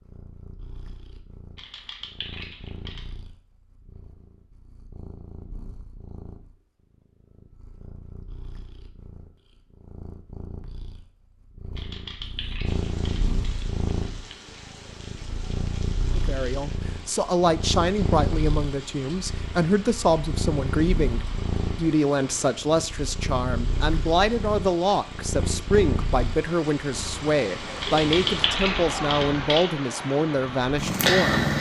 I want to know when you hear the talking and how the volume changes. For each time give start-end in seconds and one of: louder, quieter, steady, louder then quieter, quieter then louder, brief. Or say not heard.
16.1-31.5 steady.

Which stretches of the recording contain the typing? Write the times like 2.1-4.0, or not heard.
1.6-3.1, 11.8-13.3, 27.8-29.7.